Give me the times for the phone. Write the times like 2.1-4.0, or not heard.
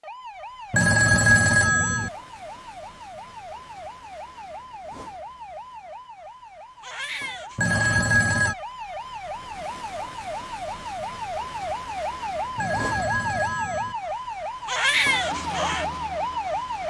0.7-2.1, 7.5-8.6, 12.6-13.9.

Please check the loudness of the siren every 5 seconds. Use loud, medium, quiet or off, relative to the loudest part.
quiet, medium, loud, loud.